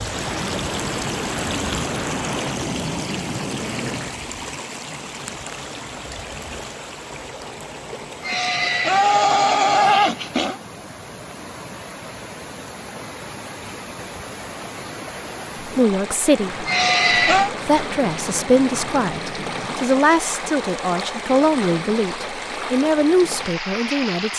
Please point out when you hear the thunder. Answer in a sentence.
The thunder can be heard from 0.1 to 4.2 s and from 16.4 to 19.9 s.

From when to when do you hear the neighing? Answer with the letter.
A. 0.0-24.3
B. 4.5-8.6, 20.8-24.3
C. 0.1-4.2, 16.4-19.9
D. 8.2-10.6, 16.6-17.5
D.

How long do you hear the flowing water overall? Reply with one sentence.
You can hear the flowing water for 24 seconds altogether.